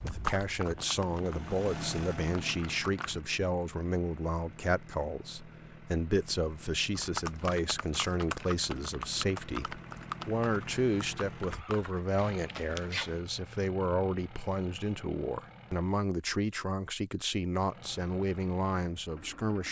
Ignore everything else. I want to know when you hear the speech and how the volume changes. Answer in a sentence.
You can hear the speech from 0.0 to 19.6 s, at a steady volume.